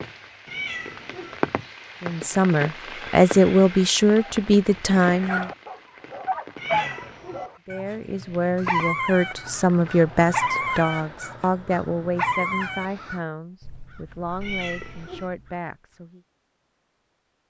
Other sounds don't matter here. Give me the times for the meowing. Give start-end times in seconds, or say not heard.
0.5-1.4, 6.5-7.5, 14.4-15.3.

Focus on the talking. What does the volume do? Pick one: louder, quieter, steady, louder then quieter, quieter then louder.
quieter.